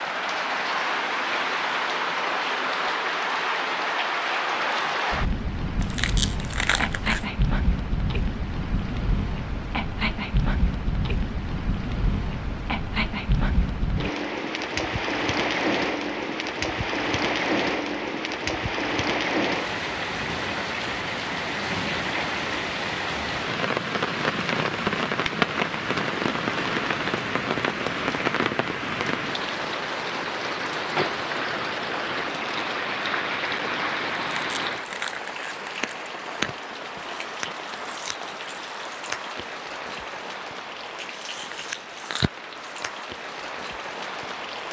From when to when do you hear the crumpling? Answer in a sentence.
The crumpling can be heard from 5.8 to 7.3 s and from 34.1 to 36.1 s.